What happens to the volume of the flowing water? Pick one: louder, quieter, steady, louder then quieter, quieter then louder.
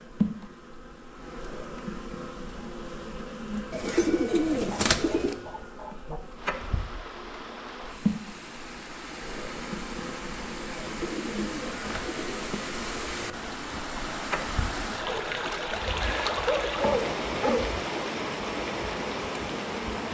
louder.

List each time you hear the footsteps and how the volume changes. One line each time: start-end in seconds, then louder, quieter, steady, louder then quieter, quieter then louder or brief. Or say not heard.
not heard.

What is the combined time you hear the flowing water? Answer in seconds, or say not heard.
14 s.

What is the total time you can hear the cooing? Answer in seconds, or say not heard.
3 s.